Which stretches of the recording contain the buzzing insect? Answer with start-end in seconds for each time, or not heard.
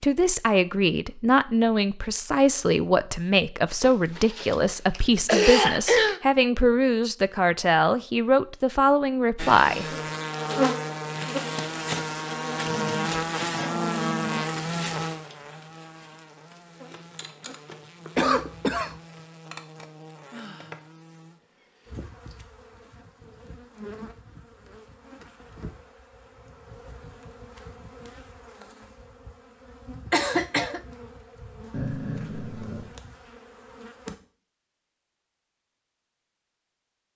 9.3-34.1.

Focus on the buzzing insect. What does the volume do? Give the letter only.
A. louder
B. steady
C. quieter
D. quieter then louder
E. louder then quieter
C.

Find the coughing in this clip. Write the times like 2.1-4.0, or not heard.
3.8-6.2, 18.1-18.9, 30.1-30.8.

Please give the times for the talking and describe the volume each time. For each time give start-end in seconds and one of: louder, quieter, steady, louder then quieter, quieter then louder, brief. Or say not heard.
0.0-9.8 steady.